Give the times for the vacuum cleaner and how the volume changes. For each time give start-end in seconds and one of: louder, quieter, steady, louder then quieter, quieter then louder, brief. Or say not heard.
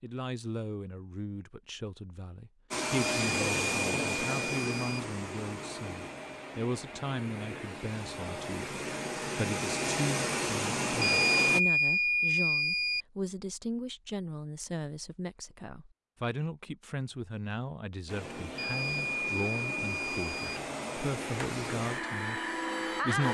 2.7-11.6 quieter then louder
18.1-23.2 louder.